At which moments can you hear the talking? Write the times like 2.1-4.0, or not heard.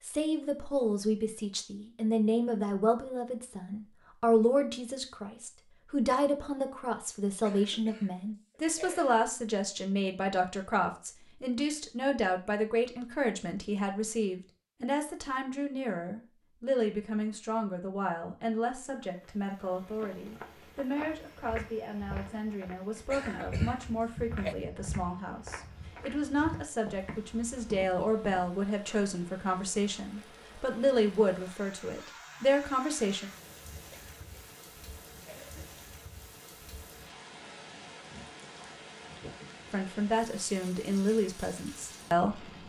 0.0-33.3, 39.7-42.6.